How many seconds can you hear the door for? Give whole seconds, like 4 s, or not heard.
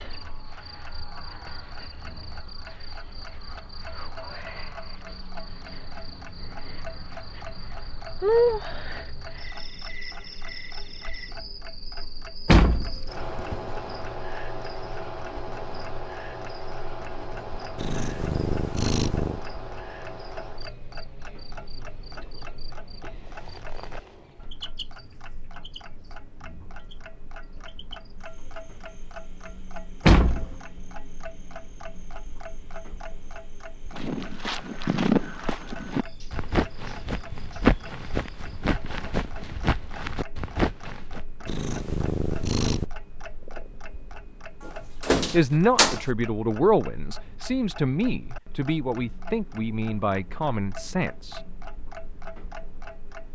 3 s.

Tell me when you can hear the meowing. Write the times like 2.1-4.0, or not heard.
17.8-19.4, 41.5-42.9.